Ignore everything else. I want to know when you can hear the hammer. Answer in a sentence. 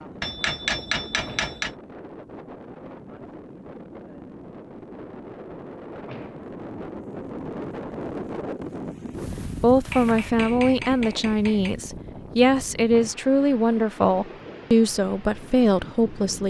The hammer can be heard from 0.2 to 1.8 s and from 9.9 to 11.8 s.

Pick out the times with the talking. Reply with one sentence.
The talking can be heard from 9.6 to 16.4 s.